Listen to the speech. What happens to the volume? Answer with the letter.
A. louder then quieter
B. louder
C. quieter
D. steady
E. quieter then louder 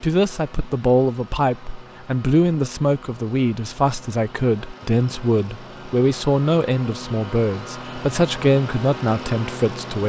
D.